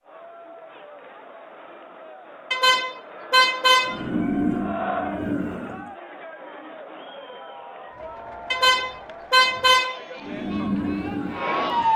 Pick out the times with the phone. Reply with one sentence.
The phone can't be heard in this clip.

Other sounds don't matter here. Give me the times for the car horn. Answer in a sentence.
The car horn can be heard from 2.5 to 4.0 s and from 8.5 to 10.0 s.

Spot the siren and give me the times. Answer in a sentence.
The siren can be heard from 3.9 to 5.9 s and from 10.2 to 11.9 s.